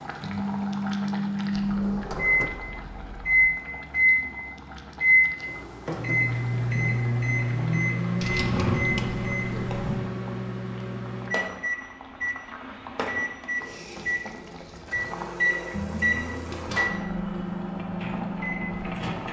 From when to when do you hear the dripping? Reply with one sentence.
The dripping can't be heard in this clip.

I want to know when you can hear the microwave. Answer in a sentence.
The microwave can be heard from 0.1 to 19.2 s.